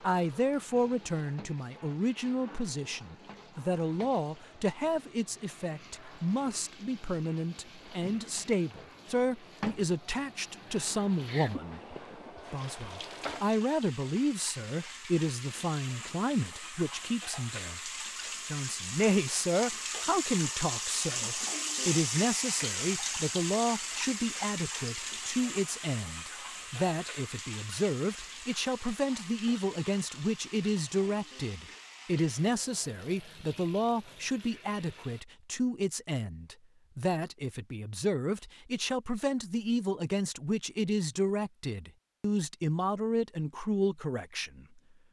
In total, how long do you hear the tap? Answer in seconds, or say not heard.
35 s.